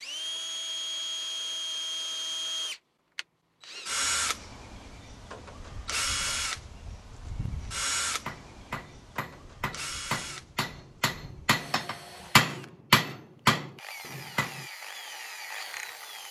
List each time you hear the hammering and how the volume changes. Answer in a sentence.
The hammering can be heard from 8.0 to 14.7 s, getting louder then quieter.